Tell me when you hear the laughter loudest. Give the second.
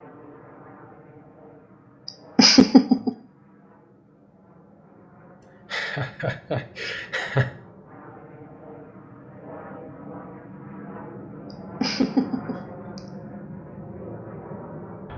3 s.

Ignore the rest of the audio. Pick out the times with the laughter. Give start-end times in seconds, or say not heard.
2.0-3.1, 5.7-7.5, 11.5-13.0.